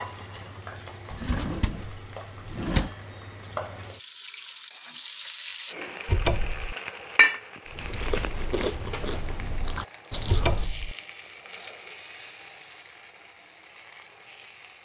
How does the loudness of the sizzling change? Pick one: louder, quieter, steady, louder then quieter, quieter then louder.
louder then quieter.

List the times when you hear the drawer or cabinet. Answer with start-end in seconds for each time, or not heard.
1.1-2.9, 6.0-6.8, 10.2-10.9.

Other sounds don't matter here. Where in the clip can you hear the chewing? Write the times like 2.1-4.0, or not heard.
7.7-10.7.